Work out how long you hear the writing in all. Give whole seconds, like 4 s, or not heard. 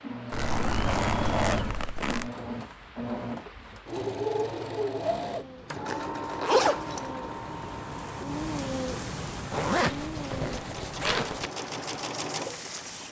not heard.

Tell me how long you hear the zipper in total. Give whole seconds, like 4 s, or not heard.
5 s.